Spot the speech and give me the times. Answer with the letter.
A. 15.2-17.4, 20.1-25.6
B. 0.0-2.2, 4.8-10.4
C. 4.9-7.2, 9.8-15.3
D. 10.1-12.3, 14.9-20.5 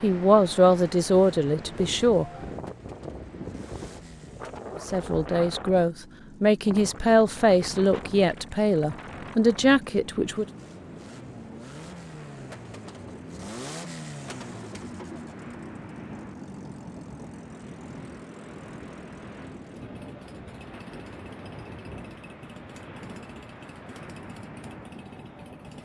B.